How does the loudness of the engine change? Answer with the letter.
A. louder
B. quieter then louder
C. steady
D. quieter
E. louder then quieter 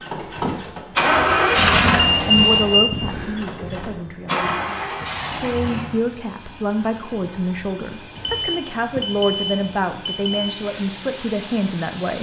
D.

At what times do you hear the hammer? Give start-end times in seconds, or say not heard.
not heard.